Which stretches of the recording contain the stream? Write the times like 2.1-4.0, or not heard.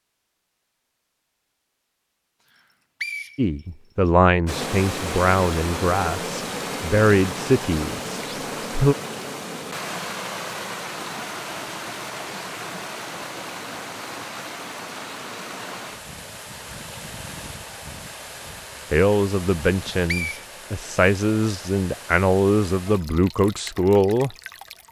4.5-24.8.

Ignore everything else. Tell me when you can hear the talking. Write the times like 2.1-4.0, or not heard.
3.4-8.9, 18.9-24.4.